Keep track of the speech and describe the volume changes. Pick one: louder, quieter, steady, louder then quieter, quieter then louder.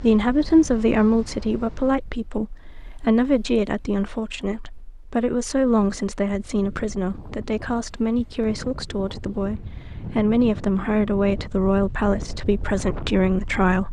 steady.